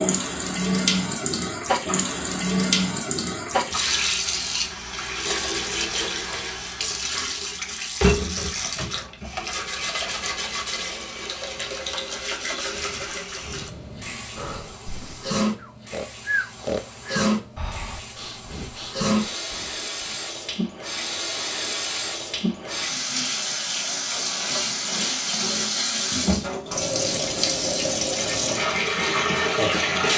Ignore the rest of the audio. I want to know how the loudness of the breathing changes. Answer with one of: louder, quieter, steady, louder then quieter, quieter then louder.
louder then quieter.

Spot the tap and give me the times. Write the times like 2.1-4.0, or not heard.
0.0-30.1.